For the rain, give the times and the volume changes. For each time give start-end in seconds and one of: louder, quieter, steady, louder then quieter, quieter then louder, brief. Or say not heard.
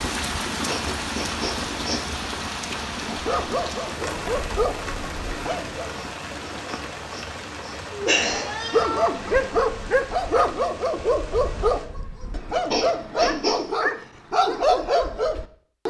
0.0-11.9 quieter.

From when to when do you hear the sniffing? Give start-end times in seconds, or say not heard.
0.7-2.0, 6.0-8.6, 12.7-13.6.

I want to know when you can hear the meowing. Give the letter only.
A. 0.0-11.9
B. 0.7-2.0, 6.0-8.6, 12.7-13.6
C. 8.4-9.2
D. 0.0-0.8
C.